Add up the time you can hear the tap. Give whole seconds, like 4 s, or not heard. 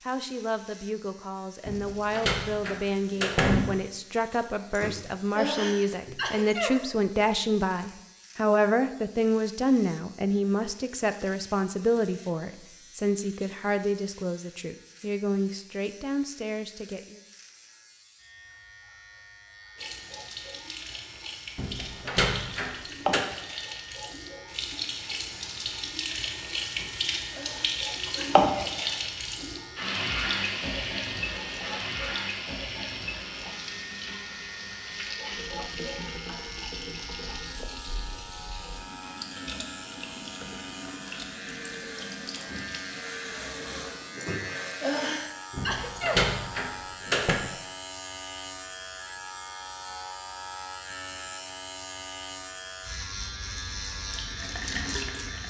26 s.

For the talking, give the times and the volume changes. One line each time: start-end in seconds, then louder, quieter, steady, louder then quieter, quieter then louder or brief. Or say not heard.
0.0-17.2 louder then quieter.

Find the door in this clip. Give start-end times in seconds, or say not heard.
1.6-3.6, 21.6-23.2, 45.5-47.4.